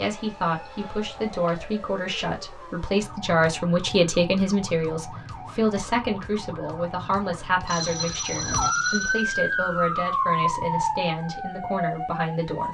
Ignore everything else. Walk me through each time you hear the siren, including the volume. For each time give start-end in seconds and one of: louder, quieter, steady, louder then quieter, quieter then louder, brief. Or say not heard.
0.0-12.6 louder.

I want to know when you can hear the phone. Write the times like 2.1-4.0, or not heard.
7.7-9.2.